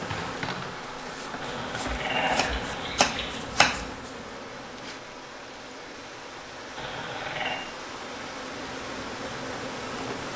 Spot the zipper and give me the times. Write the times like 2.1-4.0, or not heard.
not heard.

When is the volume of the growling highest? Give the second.
2 s.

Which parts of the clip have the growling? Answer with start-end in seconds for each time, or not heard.
1.4-3.4, 6.8-7.6.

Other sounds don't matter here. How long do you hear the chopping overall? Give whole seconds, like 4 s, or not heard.
3 s.